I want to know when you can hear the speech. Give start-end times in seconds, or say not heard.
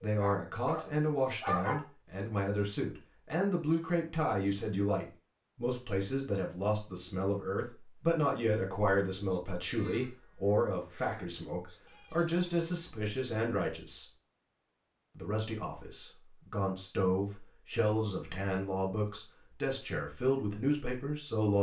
0.0-14.1, 15.2-21.5.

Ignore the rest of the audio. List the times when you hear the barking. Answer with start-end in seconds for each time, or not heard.
0.0-1.9.